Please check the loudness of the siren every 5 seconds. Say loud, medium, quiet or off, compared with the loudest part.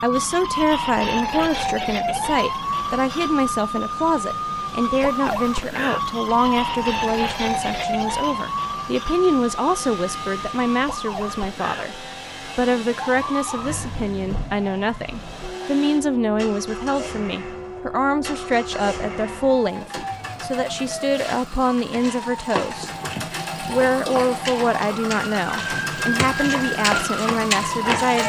loud, loud, medium, medium, medium, loud.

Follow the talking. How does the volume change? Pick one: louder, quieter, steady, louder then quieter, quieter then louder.
steady.